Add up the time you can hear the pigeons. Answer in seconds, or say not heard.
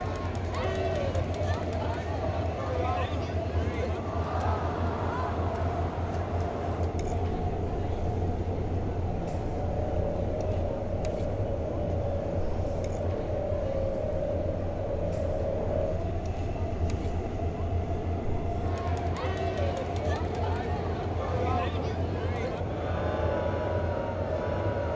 not heard.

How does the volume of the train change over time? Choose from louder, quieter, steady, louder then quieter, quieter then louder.
steady.